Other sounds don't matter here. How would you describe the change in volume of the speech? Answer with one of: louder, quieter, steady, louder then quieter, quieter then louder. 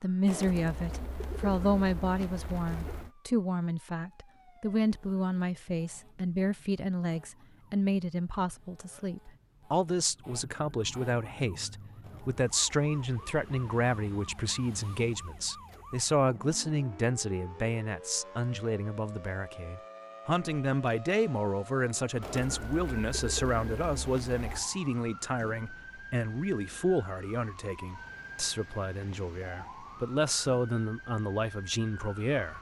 steady.